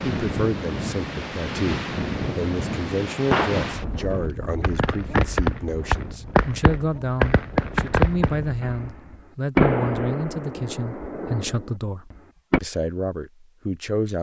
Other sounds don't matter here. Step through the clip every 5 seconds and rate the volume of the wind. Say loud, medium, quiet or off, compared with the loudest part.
loud, medium, off.